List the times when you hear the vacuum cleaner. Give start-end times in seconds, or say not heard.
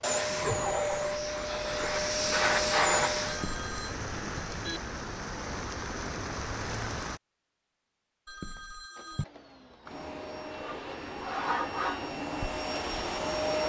0.0-3.5, 8.9-13.6.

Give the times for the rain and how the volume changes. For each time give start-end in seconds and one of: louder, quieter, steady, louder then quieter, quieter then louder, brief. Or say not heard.
0.1-7.2 louder.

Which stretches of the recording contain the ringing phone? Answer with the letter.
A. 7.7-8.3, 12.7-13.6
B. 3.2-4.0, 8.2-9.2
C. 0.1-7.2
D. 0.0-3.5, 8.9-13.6
B.